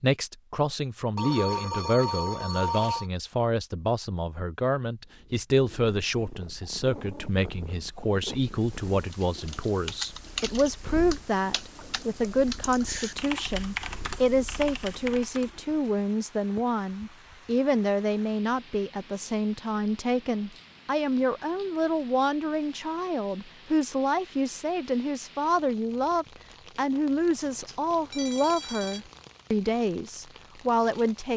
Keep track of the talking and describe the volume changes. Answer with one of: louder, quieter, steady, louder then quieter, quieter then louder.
steady.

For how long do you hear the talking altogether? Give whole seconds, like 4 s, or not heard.
31 s.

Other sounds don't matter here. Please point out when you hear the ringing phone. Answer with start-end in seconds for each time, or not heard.
1.1-3.1, 27.4-29.1.